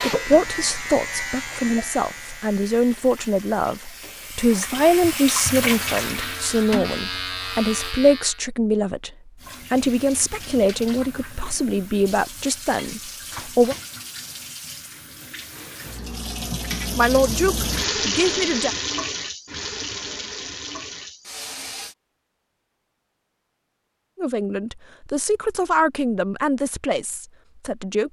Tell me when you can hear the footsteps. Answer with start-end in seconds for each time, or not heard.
not heard.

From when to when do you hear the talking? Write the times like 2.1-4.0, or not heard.
0.0-13.8, 16.9-18.7, 24.1-28.0.